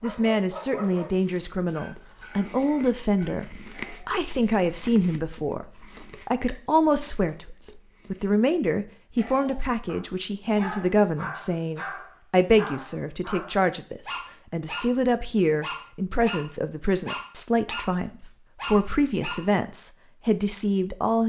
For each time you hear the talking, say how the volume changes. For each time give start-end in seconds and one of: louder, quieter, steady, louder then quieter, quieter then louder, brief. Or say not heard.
0.0-21.2 steady.